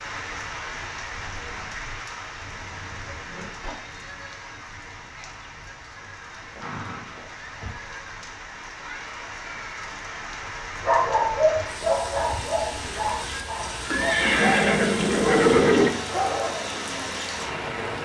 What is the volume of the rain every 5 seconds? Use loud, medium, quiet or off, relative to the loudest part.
medium, medium, loud, loud.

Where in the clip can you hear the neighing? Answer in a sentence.
You can hear the neighing from 3.0 to 3.8 s, from 6.3 to 7.8 s and from 13.9 to 15.9 s.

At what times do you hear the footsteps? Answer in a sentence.
The footsteps can't be heard in this clip.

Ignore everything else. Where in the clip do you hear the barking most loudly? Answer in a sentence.
The volume of the barking peaks at 11 seconds.